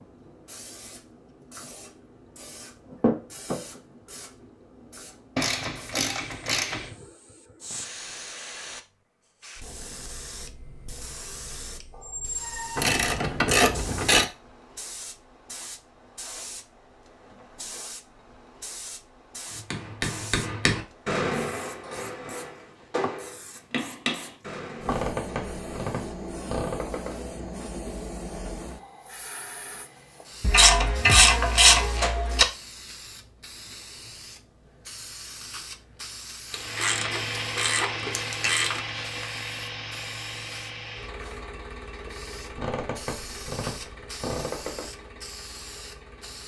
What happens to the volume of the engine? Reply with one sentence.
The loudness of the engine goes down.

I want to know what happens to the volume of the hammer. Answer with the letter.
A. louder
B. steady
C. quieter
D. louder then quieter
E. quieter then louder
C.